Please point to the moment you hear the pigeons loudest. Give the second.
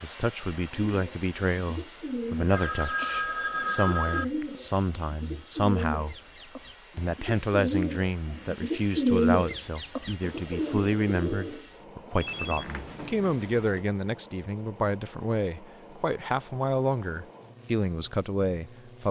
9 s.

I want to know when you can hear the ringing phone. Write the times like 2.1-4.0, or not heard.
2.5-4.2, 12.2-13.8.